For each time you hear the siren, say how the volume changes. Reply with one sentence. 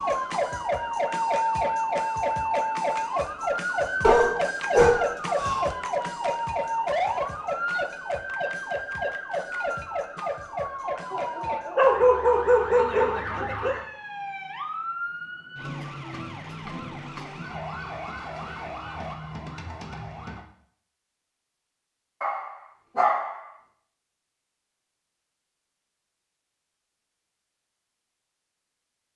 The siren can be heard from 0.0 to 20.4 s, getting quieter.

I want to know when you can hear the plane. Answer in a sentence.
You can't hear the plane here.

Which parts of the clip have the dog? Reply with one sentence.
You can hear the dog from 4.0 to 5.7 s, from 11.1 to 13.8 s and from 22.2 to 23.4 s.